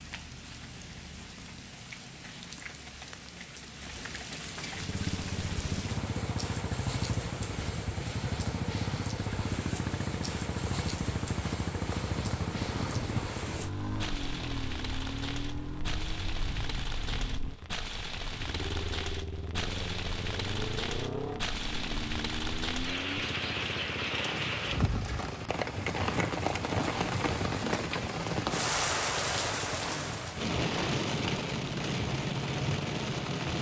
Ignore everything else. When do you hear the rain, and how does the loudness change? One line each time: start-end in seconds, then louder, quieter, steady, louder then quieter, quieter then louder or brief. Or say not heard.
0.0-33.5 louder.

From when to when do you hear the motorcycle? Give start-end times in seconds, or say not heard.
4.7-33.4.